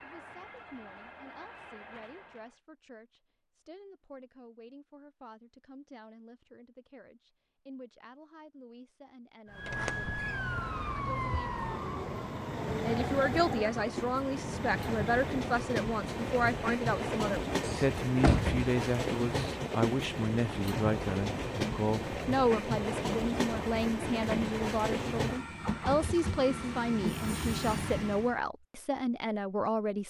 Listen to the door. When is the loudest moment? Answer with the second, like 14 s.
18 s.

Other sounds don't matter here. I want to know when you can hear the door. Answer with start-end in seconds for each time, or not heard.
9.7-10.3, 17.6-18.6.